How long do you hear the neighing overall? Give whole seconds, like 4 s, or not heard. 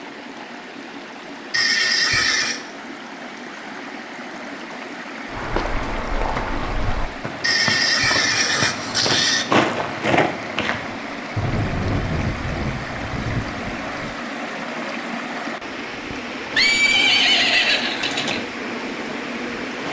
5 s.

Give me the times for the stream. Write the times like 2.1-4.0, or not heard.
0.0-19.8.